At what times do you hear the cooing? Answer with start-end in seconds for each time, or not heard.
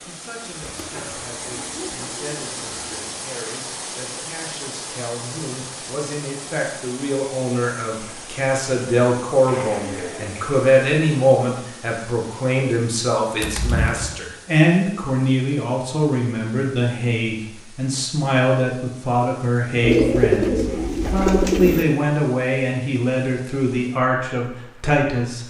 0.6-3.0, 9.4-10.6, 13.4-14.2, 19.8-21.9.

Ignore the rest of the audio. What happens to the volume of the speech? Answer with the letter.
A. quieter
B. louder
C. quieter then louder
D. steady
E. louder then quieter
B.